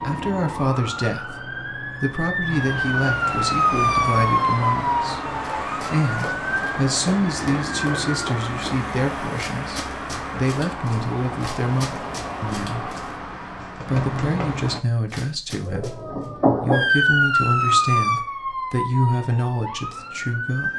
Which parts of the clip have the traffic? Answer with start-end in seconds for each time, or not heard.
0.0-14.8.